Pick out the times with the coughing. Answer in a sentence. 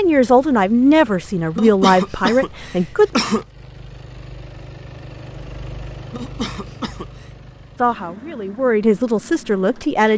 The coughing can be heard from 1.6 to 3.5 s and from 6.1 to 7.2 s.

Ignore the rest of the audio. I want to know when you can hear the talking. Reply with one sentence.
The talking can be heard from 0.0 to 3.1 s and from 7.8 to 10.1 s.